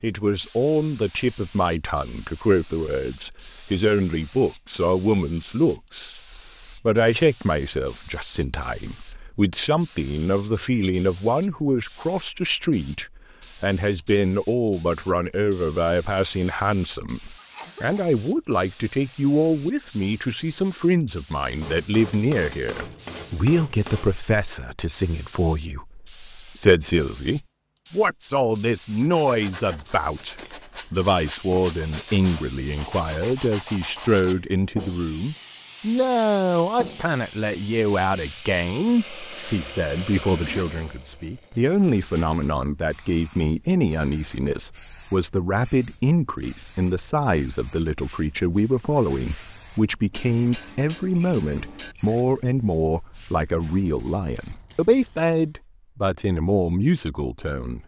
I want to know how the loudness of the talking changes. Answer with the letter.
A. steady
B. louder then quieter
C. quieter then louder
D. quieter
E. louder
A.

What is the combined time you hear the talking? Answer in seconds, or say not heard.
58 s.